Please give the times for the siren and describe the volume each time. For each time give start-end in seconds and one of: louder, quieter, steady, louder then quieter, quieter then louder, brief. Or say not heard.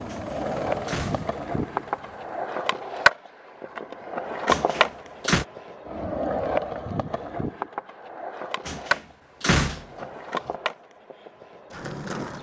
not heard.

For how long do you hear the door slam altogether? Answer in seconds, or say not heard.
4 s.